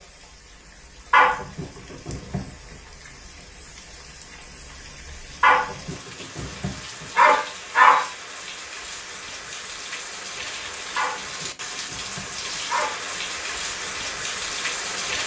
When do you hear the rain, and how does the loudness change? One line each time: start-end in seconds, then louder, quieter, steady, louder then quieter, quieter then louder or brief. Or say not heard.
0.0-15.2 louder.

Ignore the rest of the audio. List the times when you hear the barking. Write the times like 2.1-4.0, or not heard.
1.1-2.5, 5.4-8.1, 10.9-13.0.